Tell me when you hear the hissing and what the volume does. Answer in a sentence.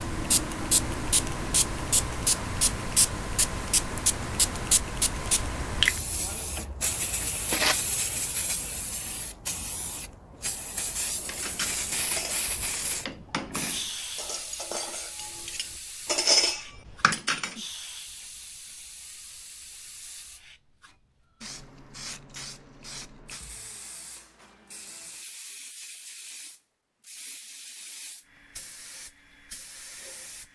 The hissing can be heard from 0.0 to 30.5 s, getting quieter.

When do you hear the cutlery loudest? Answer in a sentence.
The volume of the cutlery peaks at 16 seconds.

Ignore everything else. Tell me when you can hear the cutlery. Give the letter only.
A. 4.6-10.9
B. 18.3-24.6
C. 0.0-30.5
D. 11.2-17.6
D.